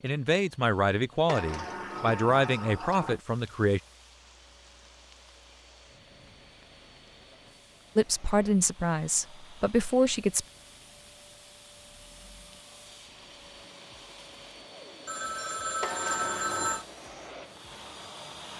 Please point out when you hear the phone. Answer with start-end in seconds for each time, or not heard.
15.1-16.9.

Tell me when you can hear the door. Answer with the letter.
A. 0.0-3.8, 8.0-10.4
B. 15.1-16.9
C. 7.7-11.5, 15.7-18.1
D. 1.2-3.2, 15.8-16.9
D.